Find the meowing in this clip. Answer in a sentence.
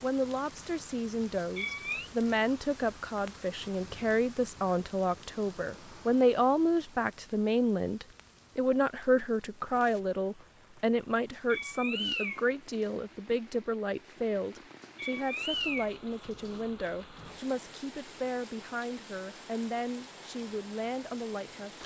You can hear the meowing from 1.4 to 2.1 s, from 11.5 to 12.4 s and from 14.9 to 16.6 s.